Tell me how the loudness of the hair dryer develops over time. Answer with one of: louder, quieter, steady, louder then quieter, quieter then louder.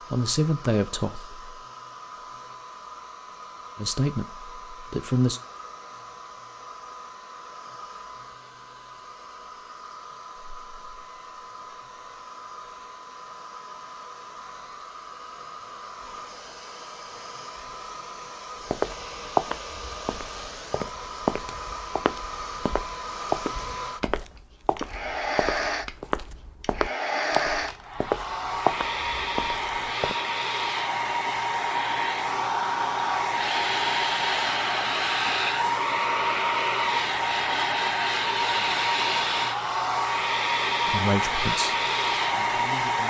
louder.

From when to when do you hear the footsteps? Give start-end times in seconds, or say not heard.
18.6-30.1.